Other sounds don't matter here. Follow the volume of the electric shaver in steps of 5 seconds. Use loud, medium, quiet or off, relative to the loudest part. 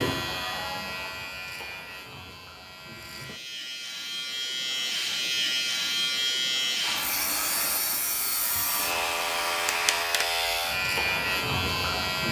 medium, loud, loud.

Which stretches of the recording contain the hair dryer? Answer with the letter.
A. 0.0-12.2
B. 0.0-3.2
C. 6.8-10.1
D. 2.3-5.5
C.